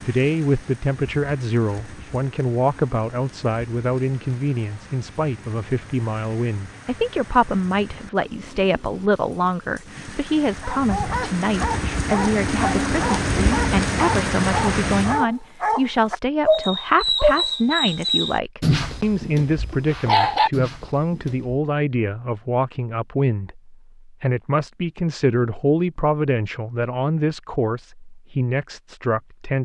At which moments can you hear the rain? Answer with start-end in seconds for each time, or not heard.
0.0-15.2.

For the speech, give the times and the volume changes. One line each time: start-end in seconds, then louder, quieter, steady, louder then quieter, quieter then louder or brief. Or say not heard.
0.0-29.6 steady.